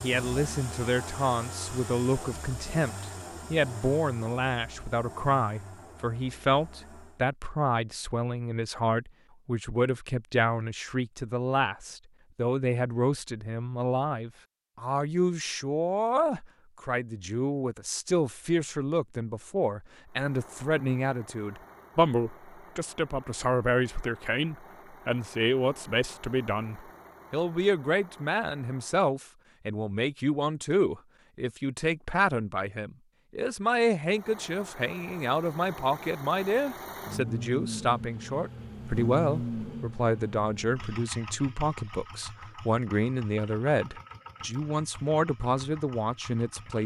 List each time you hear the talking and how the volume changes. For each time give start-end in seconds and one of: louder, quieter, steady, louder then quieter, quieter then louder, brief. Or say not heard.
0.0-46.8 steady.